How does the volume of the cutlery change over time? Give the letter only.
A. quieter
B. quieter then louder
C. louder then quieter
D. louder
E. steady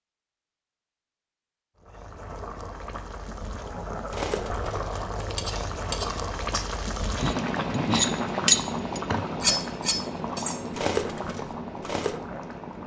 C.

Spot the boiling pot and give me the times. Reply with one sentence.
You can hear the boiling pot from 1.8 to 12.8 s.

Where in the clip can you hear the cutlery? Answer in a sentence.
The cutlery can be heard from 4.1 to 12.2 s.